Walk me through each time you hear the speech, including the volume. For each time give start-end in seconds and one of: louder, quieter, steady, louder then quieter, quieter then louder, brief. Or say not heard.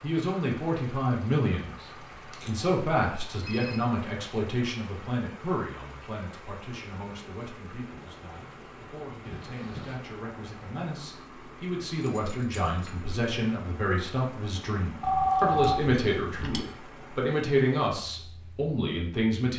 0.0-19.5 quieter then louder.